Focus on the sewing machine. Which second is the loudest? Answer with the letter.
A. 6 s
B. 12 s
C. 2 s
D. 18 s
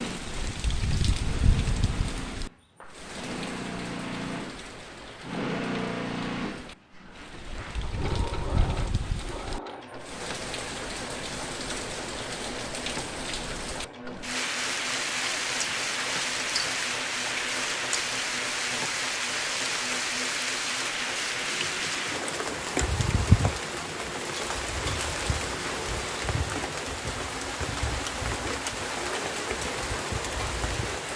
A.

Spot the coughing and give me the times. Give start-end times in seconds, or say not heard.
not heard.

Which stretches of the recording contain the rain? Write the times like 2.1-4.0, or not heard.
0.0-31.1.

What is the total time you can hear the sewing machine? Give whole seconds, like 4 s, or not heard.
31 s.